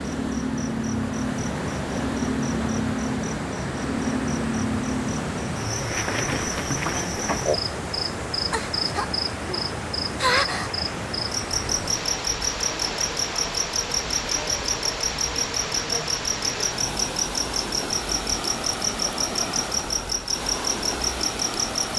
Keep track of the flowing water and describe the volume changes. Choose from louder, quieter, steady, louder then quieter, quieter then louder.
steady.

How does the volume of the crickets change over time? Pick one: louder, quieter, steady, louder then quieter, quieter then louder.
steady.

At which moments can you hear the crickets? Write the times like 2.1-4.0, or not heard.
0.0-21.9.